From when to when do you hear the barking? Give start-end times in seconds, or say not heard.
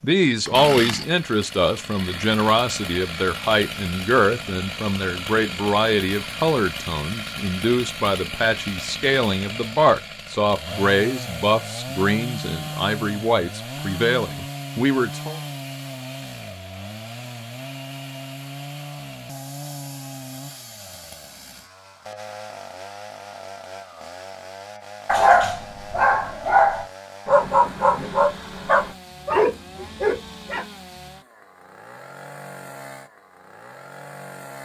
25.1-30.6.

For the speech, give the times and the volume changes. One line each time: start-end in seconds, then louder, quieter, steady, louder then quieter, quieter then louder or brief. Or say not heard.
0.0-15.4 steady.